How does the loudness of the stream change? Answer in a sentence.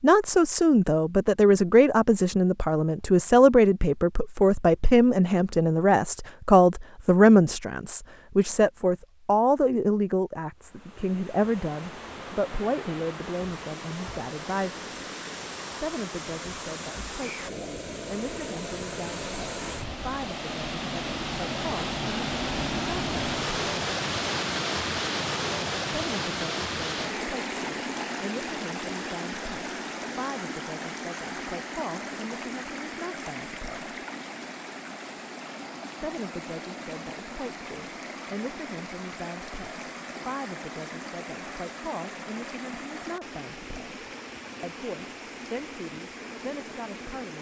The loudness of the stream goes up, then down.